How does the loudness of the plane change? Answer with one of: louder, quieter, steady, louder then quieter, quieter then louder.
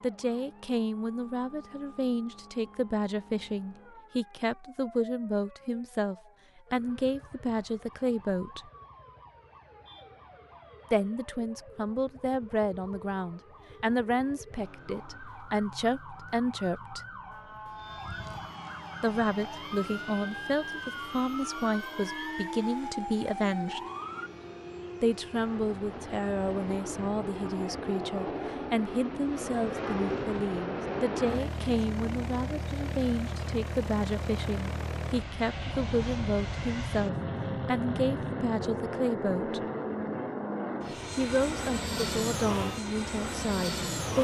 louder.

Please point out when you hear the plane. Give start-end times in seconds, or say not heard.
17.6-44.2.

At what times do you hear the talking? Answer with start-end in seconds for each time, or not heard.
0.0-8.7, 10.9-17.0, 19.0-23.8, 25.0-39.6, 41.1-44.2.